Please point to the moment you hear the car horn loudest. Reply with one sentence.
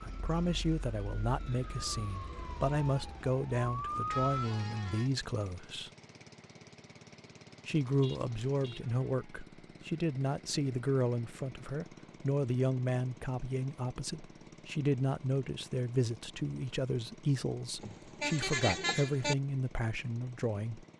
The volume of the car horn peaks at 19 seconds.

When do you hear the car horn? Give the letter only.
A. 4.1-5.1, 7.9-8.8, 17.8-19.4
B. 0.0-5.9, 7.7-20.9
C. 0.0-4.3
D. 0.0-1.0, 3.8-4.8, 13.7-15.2
A.